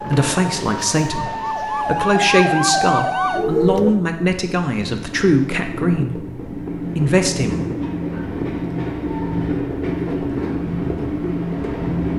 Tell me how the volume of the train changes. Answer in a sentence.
The loudness of the train goes up.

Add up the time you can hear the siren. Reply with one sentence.
You can hear the siren for 4 seconds altogether.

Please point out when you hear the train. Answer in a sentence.
The train can be heard from 0.0 to 12.1 s.